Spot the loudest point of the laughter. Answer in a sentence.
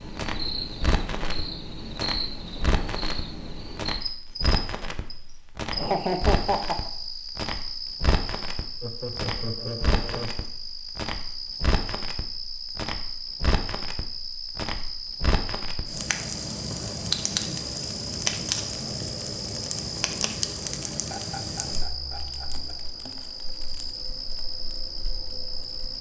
The volume of the laughter peaks at 6 seconds.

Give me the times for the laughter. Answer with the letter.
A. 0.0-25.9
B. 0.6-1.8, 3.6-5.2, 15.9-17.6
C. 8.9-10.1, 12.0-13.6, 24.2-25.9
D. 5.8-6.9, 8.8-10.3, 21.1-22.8
D.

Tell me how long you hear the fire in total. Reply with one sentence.
You can hear the fire for 26 seconds altogether.